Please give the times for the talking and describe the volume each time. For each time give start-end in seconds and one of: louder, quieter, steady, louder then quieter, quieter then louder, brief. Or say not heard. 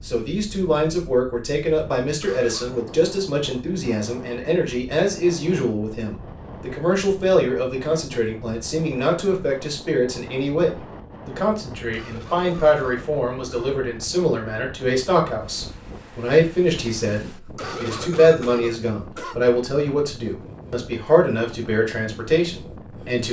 0.0-23.2 steady.